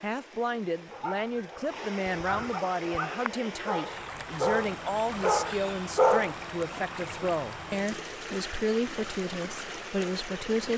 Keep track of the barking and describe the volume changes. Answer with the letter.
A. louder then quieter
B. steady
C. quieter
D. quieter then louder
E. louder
E.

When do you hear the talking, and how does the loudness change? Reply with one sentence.
The talking can be heard from 0.0 to 10.7 s, at a steady volume.